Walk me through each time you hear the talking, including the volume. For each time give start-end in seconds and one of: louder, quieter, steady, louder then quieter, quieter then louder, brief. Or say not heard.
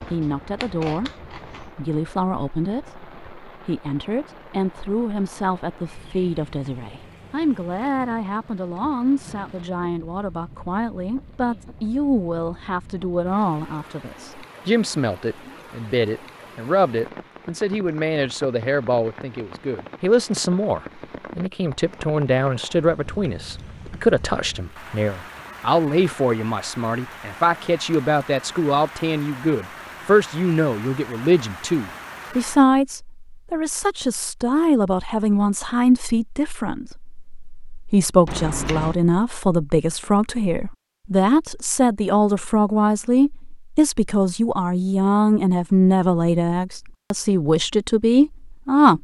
0.0-48.9 louder.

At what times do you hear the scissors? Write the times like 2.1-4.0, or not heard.
0.0-1.7, 38.2-39.0.